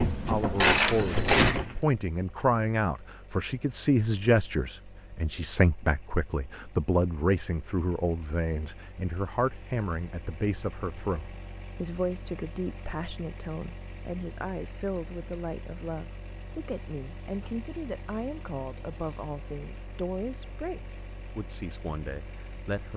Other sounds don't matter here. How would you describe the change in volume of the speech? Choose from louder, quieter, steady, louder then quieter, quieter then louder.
quieter.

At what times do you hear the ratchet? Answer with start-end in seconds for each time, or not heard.
0.0-1.8.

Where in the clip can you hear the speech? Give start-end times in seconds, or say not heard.
0.1-22.9.